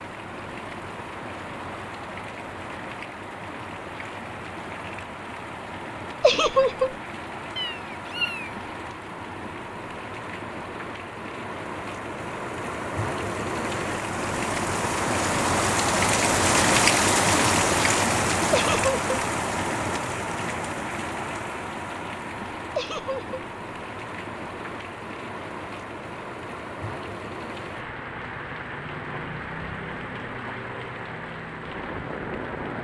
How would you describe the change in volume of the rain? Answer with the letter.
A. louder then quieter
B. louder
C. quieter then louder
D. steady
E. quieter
A.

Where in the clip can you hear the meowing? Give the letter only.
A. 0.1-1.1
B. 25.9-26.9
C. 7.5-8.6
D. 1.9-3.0
C.